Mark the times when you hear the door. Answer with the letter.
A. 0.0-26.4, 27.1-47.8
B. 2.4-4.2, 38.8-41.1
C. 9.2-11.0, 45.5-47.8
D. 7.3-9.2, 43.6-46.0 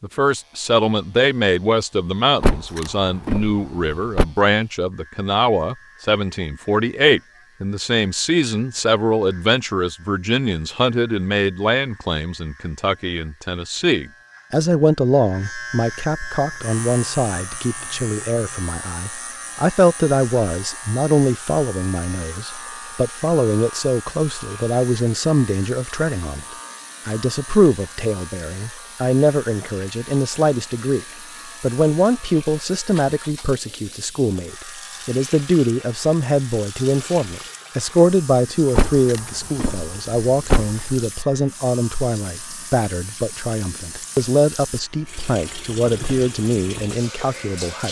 B.